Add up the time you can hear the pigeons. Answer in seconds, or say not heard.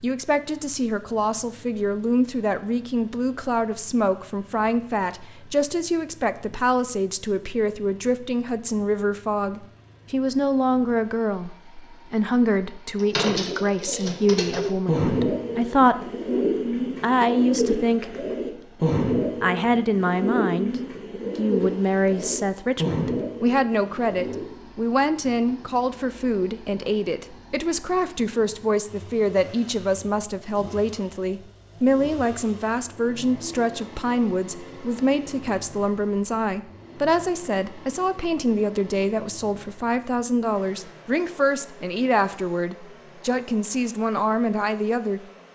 12 s.